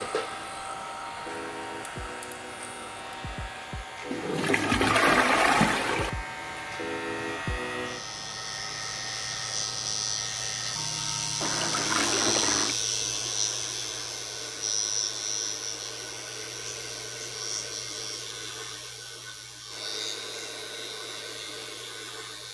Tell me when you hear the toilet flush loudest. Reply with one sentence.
The loudest moment of the toilet flush is at 5 seconds.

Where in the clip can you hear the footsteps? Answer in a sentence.
The footsteps can't be heard in this clip.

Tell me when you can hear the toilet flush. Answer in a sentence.
The toilet flush can be heard from 4.1 to 6.1 s and from 11.4 to 12.8 s.